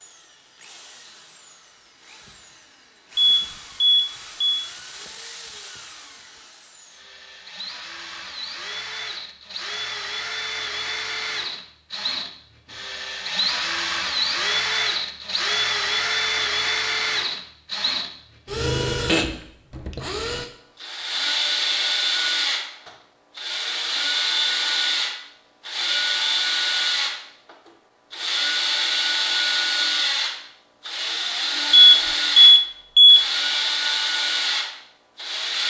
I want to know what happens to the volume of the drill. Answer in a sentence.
The volume of the drill goes up.